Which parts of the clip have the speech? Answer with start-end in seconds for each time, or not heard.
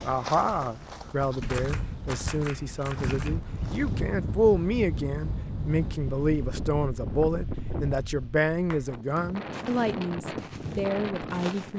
0.0-11.7.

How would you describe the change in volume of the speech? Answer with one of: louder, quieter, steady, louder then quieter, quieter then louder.
steady.